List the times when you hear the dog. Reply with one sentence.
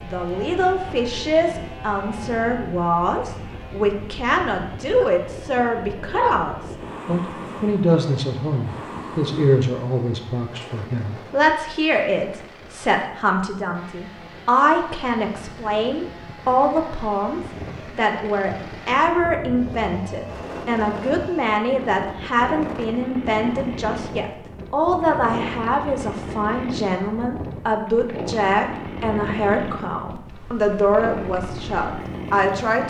You can't hear the dog here.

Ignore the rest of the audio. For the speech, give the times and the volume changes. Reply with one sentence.
The speech can be heard from 0.0 to 32.8 s, at a steady volume.